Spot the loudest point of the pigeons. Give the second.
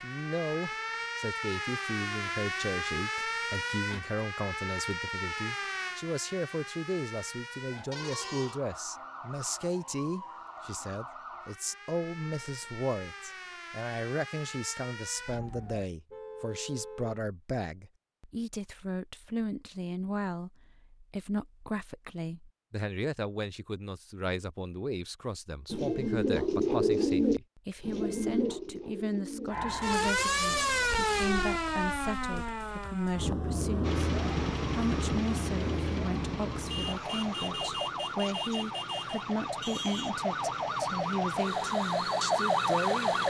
27 s.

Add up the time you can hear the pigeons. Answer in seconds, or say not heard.
5 s.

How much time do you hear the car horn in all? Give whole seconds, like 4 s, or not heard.
4 s.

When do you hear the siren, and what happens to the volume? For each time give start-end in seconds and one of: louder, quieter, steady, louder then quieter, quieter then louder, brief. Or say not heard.
0.0-15.9 quieter
29.5-43.2 quieter then louder.